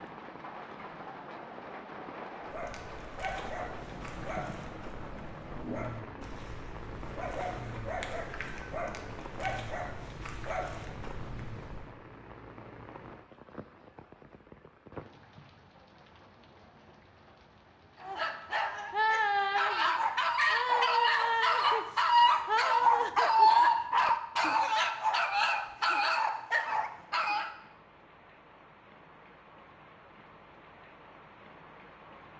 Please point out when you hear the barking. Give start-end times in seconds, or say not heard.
2.4-11.9, 18.0-27.5.